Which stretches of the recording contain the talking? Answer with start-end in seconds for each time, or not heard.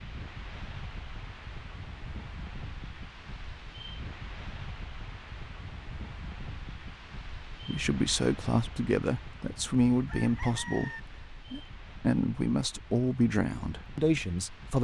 7.5-14.7.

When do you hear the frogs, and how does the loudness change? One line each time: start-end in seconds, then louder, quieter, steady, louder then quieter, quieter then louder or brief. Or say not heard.
not heard.